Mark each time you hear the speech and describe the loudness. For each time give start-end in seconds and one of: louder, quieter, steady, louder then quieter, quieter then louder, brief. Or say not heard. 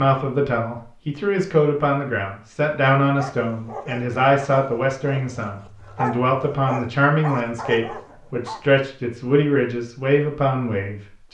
0.0-11.2 steady.